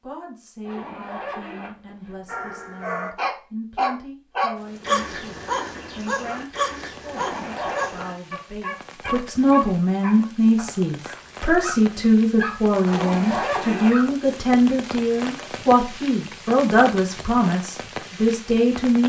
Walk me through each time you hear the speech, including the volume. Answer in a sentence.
The speech can be heard from 0.0 to 19.0 s, getting louder.